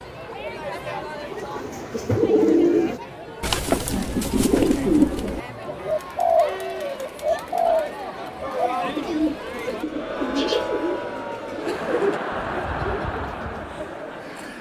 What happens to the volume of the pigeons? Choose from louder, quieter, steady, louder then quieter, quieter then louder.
quieter.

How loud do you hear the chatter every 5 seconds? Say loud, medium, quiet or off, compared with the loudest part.
medium, loud, loud.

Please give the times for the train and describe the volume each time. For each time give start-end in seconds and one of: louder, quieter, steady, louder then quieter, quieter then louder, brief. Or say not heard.
not heard.